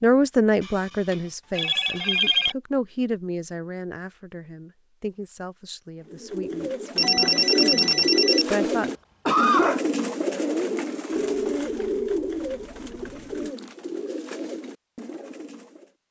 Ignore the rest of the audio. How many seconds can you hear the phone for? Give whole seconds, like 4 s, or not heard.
6 s.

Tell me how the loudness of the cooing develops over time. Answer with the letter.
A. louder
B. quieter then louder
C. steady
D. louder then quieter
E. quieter
E.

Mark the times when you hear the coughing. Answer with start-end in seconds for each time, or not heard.
8.4-9.8.